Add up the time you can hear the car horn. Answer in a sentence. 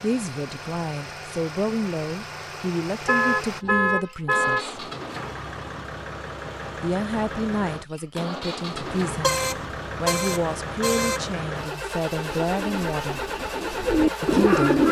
The car horn can be heard for 4 seconds in total.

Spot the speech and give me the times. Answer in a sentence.
The speech can be heard from 0.0 to 4.8 s, from 6.8 to 13.2 s and from 14.2 to 14.8 s.